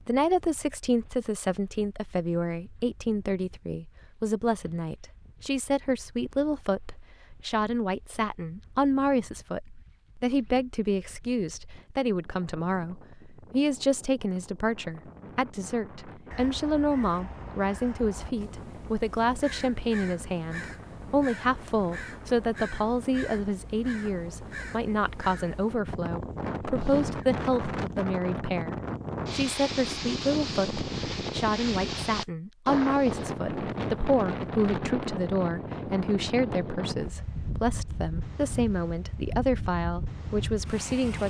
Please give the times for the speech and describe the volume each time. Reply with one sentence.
You can hear the speech from 0.1 to 41.2 s, at a steady volume.